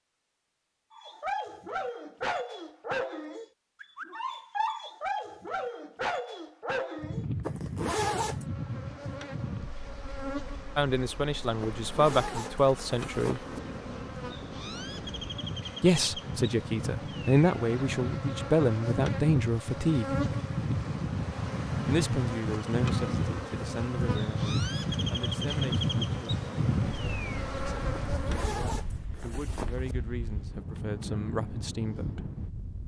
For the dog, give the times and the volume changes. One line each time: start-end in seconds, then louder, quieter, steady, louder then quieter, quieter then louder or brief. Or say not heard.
0.9-7.2 steady.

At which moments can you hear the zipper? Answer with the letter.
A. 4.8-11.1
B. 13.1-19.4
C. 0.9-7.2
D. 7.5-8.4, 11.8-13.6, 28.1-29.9
D.